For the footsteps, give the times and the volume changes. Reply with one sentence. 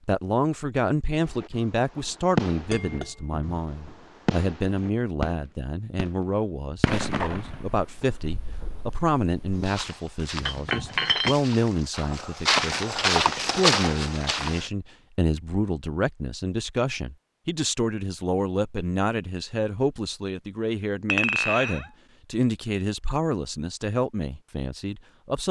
You can hear the footsteps from 9.6 to 14.7 s, getting louder.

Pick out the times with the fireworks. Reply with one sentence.
The fireworks can be heard from 1.2 to 9.7 s.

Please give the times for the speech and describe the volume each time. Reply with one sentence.
The speech can be heard from 0.1 to 25.4 s, at a steady volume.